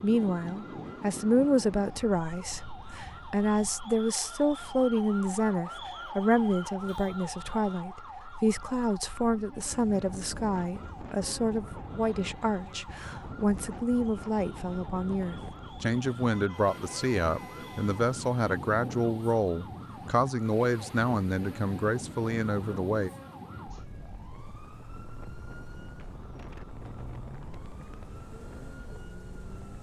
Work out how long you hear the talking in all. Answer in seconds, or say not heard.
23 s.